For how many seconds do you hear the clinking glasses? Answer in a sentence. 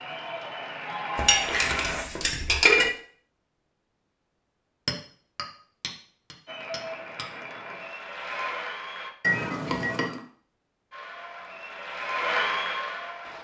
You can hear the clinking glasses for 5 seconds altogether.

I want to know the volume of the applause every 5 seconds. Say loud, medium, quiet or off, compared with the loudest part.
loud, medium, loud.